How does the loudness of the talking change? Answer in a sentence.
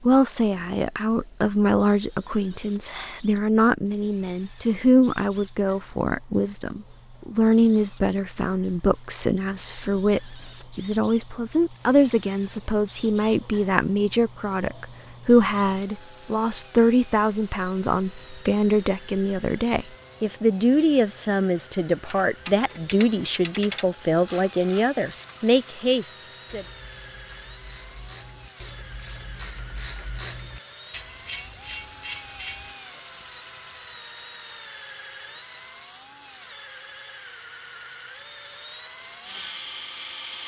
The volume of the talking stays about the same.